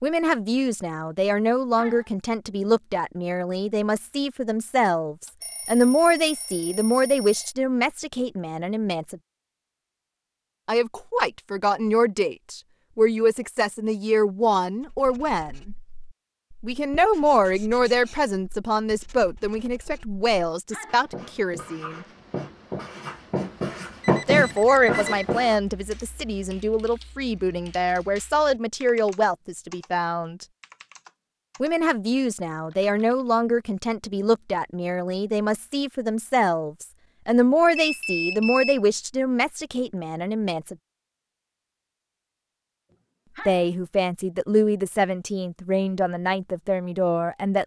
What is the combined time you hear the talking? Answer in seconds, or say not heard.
39 s.